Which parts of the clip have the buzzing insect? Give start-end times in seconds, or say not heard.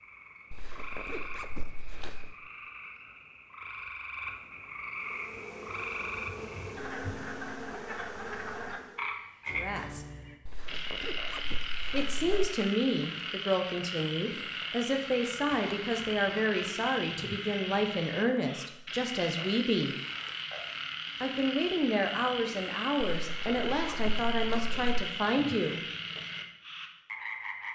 4.9-9.2.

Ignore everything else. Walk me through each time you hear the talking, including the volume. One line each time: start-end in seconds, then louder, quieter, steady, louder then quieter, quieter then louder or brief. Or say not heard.
9.6-10.1 brief
11.9-19.9 steady
21.2-25.8 steady.